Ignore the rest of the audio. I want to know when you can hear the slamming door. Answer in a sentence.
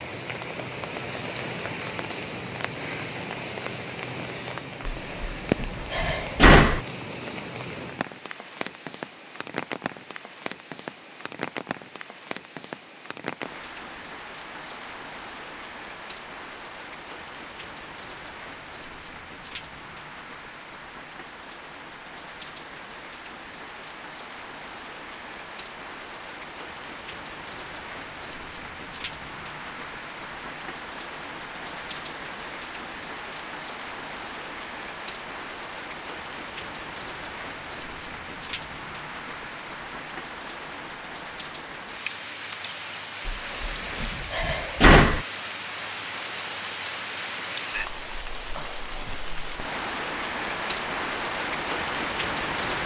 You can hear the slamming door from 4.8 to 6.8 s and from 43.2 to 45.2 s.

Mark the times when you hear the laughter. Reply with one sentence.
The laughter can't be heard in this clip.